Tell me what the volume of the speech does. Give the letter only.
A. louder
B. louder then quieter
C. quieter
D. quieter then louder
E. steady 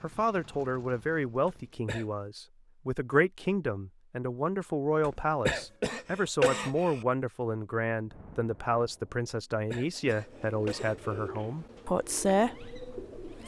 E.